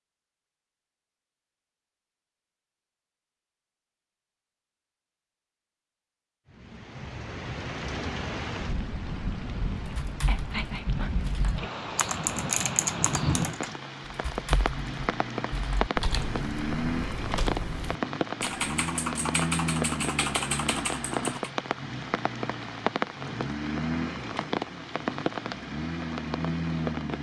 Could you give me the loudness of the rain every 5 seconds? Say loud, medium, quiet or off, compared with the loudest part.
off, medium, loud, loud, loud, loud.